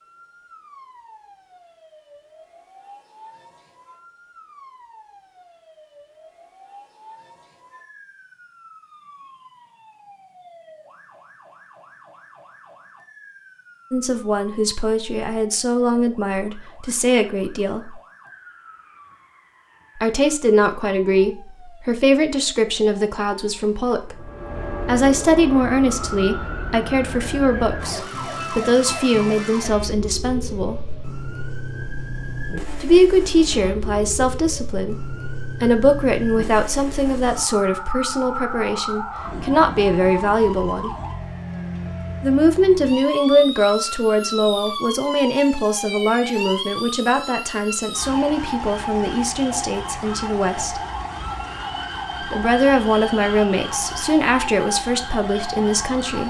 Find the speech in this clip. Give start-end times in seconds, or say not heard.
13.9-17.9, 19.9-30.9, 32.8-40.9, 42.2-50.8, 52.2-56.2.